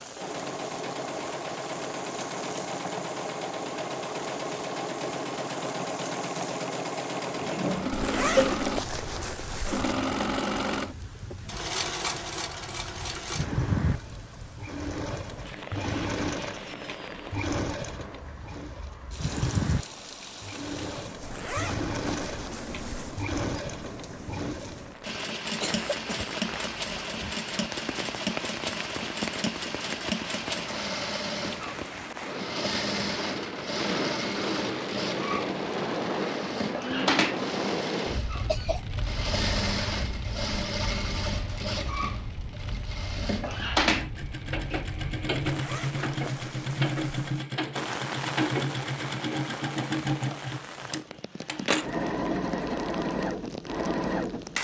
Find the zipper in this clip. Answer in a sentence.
The zipper can be heard from 7.9 to 9.9 s, from 21.2 to 23.2 s and from 45.5 to 47.3 s.